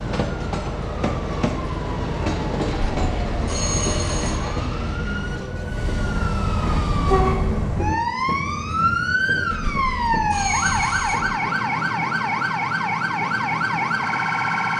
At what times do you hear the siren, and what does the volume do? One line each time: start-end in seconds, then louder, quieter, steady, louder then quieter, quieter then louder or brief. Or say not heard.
0.0-14.7 louder.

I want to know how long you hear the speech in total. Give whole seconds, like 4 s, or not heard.
not heard.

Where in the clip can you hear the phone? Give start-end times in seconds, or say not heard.
2.6-4.7, 9.5-11.3.